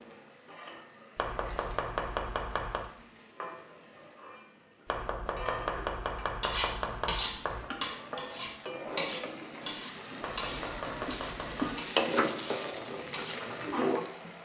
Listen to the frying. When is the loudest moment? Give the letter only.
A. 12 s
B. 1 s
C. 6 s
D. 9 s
A.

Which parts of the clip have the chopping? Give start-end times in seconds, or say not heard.
1.1-2.9, 4.8-7.7, 10.2-11.8.